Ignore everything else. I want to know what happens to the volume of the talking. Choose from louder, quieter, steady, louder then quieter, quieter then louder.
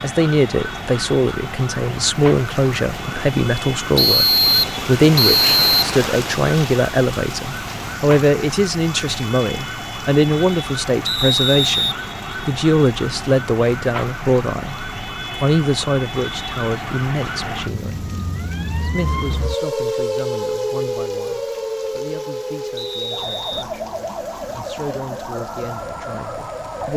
quieter.